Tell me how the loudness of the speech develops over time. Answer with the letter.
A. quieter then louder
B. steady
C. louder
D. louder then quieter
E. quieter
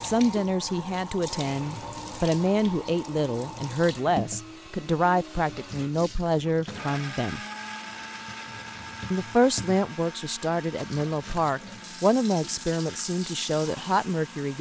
B.